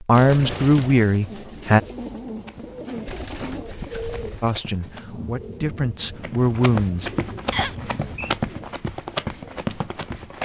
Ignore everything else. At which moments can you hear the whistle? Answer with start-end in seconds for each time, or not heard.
7.5-8.3.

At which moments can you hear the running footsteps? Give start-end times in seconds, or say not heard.
2.2-5.0, 6.2-10.4.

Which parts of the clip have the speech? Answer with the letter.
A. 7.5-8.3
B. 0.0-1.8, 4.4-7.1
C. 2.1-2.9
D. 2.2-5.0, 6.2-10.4
B.